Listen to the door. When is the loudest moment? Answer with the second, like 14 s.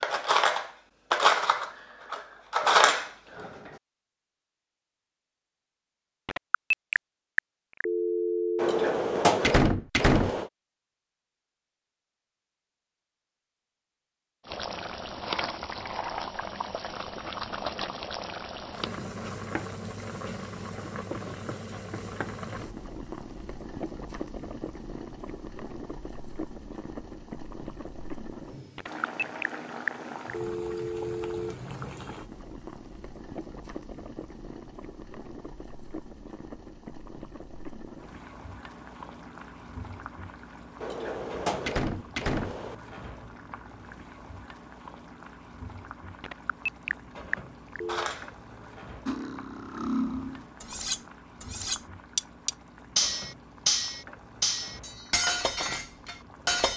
9 s.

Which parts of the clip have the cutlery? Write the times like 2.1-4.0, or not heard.
0.0-3.7, 47.9-56.7.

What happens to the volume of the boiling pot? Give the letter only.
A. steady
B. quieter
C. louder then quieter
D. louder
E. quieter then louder
B.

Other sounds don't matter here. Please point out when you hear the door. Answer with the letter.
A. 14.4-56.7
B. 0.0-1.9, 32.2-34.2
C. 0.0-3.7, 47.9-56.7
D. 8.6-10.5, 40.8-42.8
D.